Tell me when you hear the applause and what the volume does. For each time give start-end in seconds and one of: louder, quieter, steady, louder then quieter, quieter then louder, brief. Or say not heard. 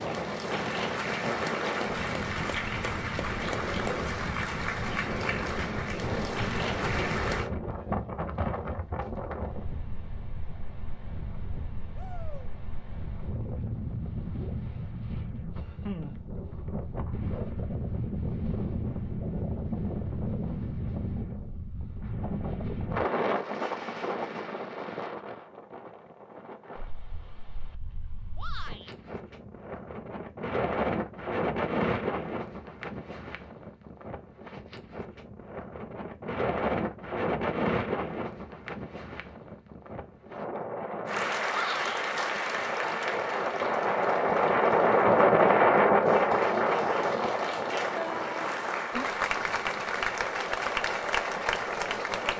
0.0-7.5 steady
41.0-52.3 quieter then louder.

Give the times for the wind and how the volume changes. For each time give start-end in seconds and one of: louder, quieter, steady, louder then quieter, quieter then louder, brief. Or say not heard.
0.0-52.3 louder.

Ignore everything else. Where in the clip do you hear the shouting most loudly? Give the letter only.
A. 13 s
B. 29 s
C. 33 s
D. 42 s
D.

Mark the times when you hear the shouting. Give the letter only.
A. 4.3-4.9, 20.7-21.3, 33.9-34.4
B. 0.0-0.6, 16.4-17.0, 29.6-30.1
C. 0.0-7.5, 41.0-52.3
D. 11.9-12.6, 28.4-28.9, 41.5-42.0
D.